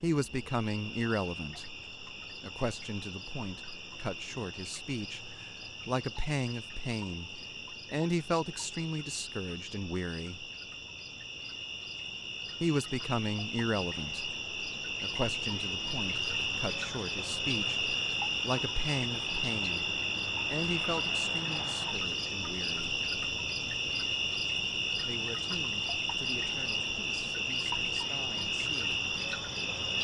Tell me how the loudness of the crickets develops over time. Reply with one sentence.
The loudness of the crickets goes up.